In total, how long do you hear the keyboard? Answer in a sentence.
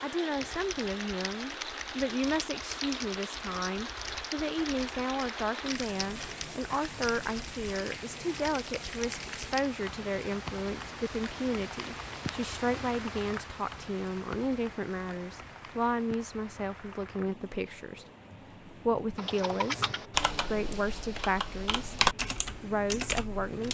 The keyboard can be heard for 14 seconds in total.